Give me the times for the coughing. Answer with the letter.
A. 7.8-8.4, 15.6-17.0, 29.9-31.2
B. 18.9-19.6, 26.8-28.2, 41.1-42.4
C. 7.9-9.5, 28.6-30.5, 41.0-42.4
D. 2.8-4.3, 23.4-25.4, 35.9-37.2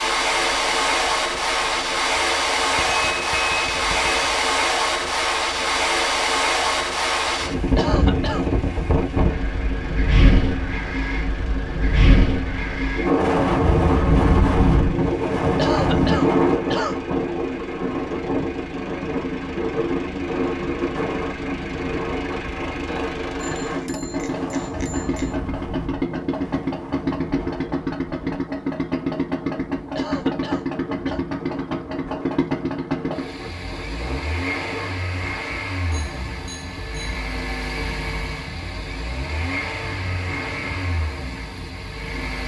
A.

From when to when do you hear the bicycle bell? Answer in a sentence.
You can hear the bicycle bell from 2.8 to 4.3 s, from 23.4 to 25.4 s and from 35.9 to 37.2 s.